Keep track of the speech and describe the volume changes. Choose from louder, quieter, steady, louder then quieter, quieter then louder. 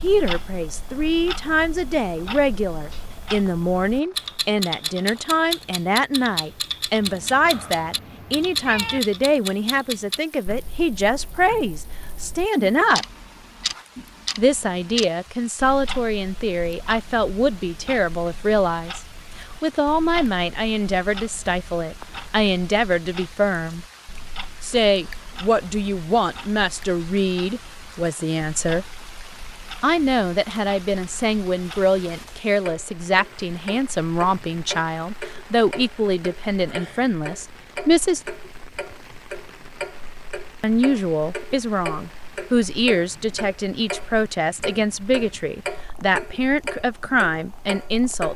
steady.